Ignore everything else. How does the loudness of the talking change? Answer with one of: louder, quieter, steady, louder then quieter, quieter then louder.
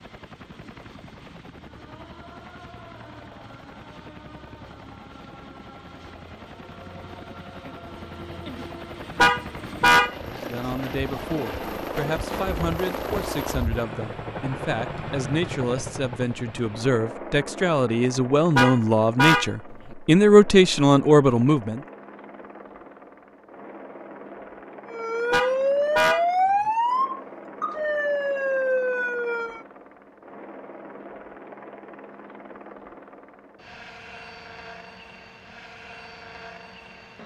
louder.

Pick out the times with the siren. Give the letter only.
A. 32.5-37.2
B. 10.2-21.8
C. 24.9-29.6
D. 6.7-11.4
C.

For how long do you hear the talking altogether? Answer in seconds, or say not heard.
12 s.